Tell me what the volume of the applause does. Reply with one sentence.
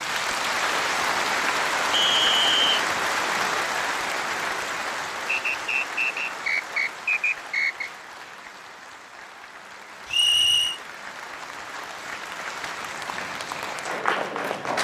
The loudness of the applause goes down, then up.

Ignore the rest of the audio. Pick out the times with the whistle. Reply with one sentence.
You can hear the whistle from 1.9 to 2.6 s, from 5.5 to 7.9 s and from 10.1 to 10.8 s.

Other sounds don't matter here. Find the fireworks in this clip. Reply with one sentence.
The fireworks can't be heard in this clip.